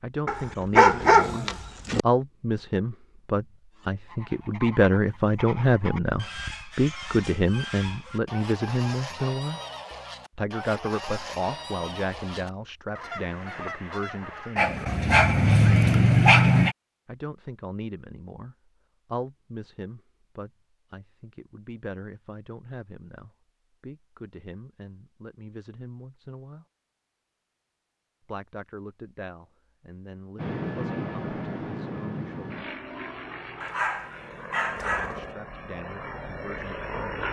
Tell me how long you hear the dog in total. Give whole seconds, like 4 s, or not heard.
6 s.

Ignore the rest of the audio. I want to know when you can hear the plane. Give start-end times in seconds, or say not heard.
30.4-37.2.